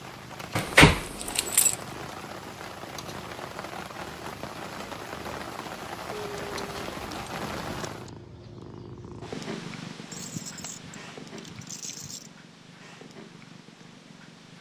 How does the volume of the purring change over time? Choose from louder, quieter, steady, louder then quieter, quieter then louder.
louder then quieter.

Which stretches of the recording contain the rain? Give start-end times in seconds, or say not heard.
0.0-8.1.